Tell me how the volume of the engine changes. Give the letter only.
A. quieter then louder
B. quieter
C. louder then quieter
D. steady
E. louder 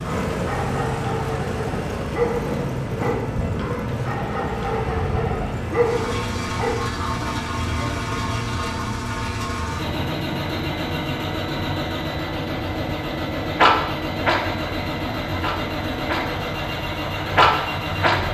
D.